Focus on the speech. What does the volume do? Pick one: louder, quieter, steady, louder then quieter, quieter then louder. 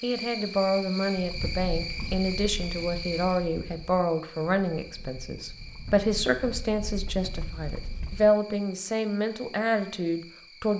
steady.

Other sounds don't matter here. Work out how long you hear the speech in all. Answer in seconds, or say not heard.
11 s.